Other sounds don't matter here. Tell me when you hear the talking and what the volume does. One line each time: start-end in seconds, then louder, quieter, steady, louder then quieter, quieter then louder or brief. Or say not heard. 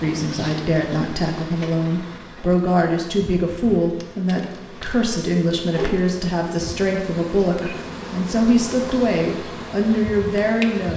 0.0-10.9 steady.